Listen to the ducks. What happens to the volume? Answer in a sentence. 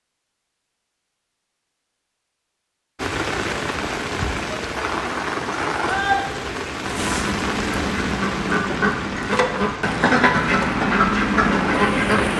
The loudness of the ducks goes up.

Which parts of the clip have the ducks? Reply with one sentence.
You can hear the ducks from 6.8 to 12.3 s.